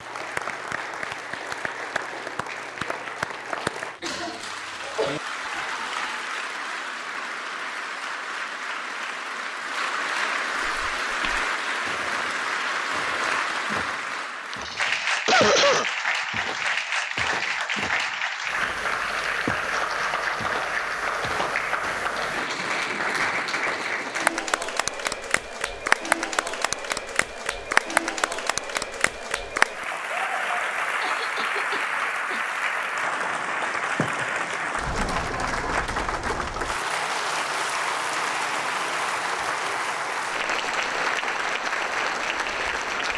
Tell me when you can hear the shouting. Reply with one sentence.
You can hear the shouting from 5.5 to 6.3 s.